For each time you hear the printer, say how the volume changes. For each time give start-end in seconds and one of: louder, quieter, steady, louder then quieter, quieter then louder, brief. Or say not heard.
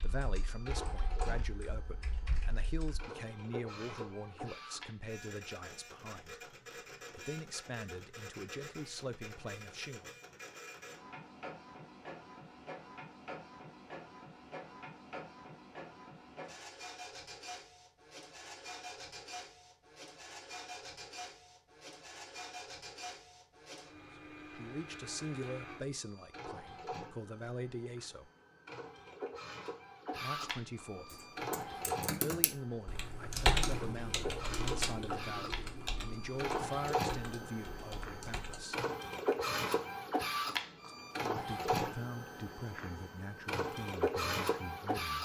0.0-45.2 louder.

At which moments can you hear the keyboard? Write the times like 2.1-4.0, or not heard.
0.0-3.0, 31.1-38.6.